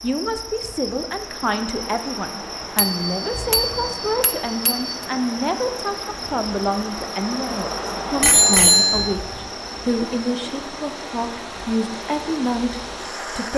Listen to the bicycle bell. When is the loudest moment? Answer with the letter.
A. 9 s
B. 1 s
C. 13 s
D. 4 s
A.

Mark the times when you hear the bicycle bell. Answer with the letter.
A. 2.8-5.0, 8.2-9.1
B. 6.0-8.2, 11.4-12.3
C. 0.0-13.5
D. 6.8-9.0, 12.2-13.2
A.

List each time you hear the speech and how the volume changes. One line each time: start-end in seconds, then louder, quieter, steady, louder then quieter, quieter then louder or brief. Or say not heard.
0.0-13.5 steady.